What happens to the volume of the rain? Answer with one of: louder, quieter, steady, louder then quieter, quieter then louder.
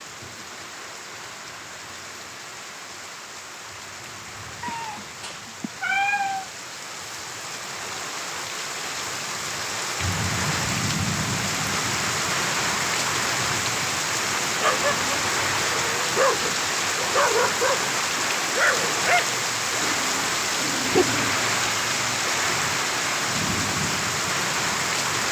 louder.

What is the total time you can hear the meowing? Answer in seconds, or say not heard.
2 s.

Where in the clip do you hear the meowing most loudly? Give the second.
6 s.